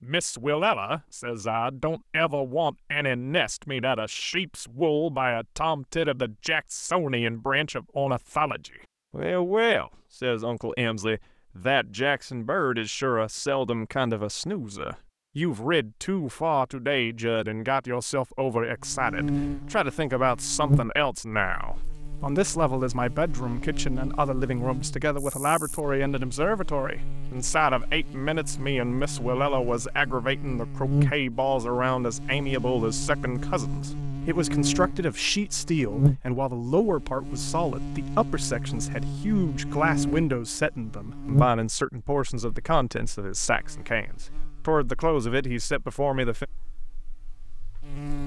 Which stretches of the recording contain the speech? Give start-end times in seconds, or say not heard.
0.0-46.5.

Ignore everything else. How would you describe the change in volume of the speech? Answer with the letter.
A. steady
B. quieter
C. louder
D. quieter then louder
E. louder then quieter
A.